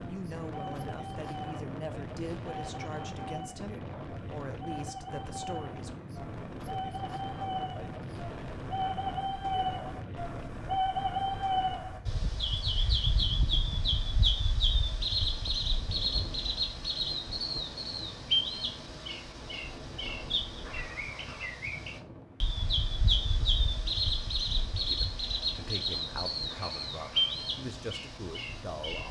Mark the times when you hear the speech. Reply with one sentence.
You can hear the speech from 0.1 to 5.9 s and from 24.9 to 29.0 s.